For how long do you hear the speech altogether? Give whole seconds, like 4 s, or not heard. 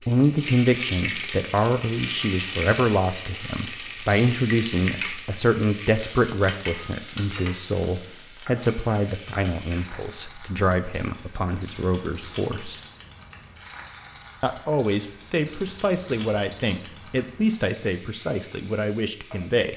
18 s.